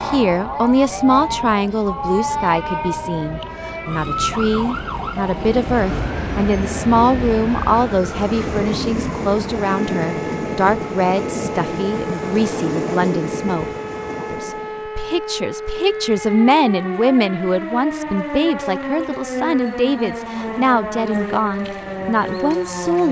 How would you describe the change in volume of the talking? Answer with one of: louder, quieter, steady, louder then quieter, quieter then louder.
steady.